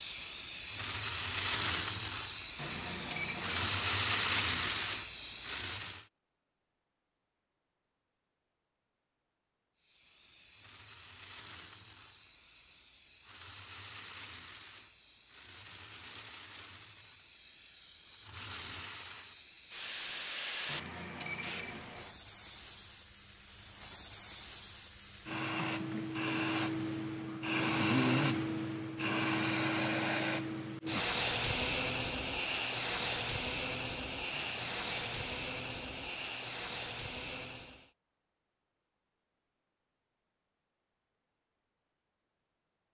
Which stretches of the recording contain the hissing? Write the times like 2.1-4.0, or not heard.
0.0-6.0, 9.8-37.9.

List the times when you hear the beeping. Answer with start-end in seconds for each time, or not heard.
2.6-5.0, 20.7-22.2, 34.4-36.1.